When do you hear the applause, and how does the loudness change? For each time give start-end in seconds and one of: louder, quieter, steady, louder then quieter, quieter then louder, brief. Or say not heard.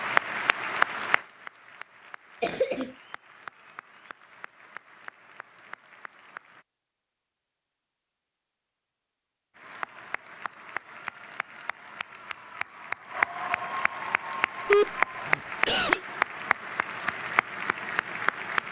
0.0-6.7 quieter
9.6-18.6 louder then quieter.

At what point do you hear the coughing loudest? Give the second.
15 s.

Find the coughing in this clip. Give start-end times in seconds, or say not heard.
2.4-2.9, 14.7-16.0.